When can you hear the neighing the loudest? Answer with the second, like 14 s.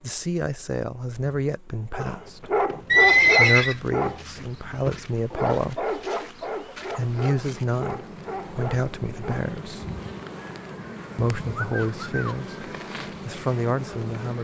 3 s.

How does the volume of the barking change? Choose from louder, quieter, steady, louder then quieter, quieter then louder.
quieter.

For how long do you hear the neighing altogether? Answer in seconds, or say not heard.
3 s.